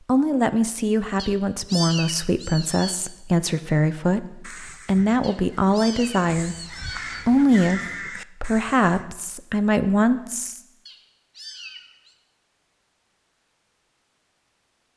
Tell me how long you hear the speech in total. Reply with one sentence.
The speech can be heard for 10 seconds in total.